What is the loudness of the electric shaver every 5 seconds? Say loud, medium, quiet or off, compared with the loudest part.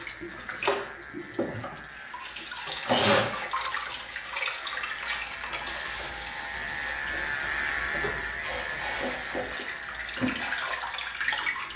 medium, loud, medium.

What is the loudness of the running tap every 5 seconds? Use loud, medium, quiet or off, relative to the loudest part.
loud, medium, loud.